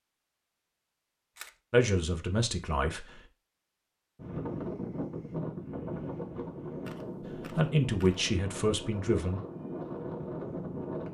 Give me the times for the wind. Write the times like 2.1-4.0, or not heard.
4.2-11.0.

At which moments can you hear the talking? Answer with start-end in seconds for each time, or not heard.
1.7-3.2, 7.3-9.4.